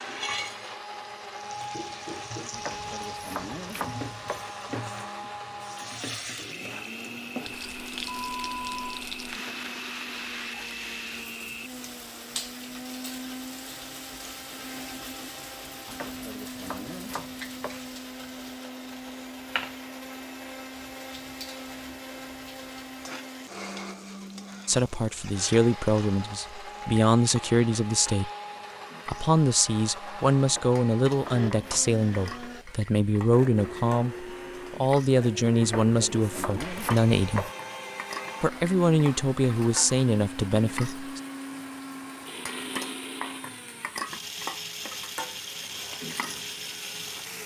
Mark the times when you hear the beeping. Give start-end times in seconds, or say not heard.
8.1-8.9.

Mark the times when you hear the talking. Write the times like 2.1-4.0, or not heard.
24.6-28.3, 29.1-37.5, 38.4-41.0.